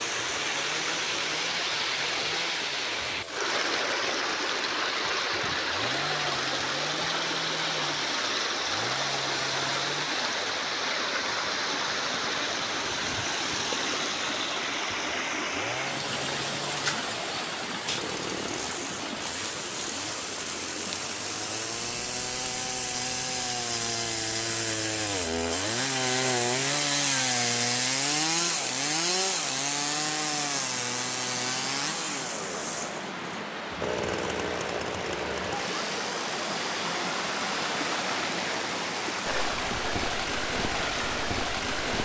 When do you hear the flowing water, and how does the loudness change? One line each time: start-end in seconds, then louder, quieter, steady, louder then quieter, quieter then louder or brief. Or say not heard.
0.0-41.9 quieter then louder.